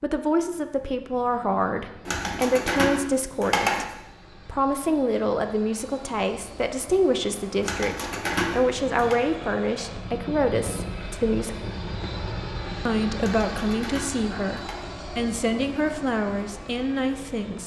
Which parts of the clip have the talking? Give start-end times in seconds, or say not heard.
0.0-11.6, 12.8-17.6.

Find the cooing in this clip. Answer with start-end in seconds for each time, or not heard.
2.0-4.0, 7.6-9.2, 13.2-14.8.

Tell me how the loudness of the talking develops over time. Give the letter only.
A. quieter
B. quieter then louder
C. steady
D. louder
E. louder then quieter
C.